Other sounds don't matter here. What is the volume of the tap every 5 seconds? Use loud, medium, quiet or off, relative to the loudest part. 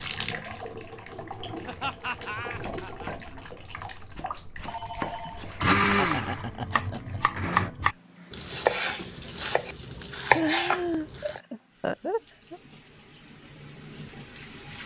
loud, medium, medium.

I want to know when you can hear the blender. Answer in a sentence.
You can hear the blender from 5.5 to 7.7 s.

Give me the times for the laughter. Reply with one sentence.
The laughter can be heard from 1.6 to 3.4 s, from 6.0 to 7.8 s and from 10.3 to 12.6 s.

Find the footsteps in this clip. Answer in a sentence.
The footsteps can't be heard in this clip.